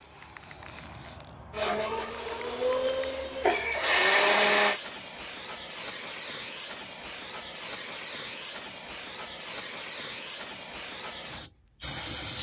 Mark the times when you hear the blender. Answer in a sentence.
The blender can be heard from 1.5 to 4.8 s.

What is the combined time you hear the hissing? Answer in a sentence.
The hissing can be heard for 12 seconds in total.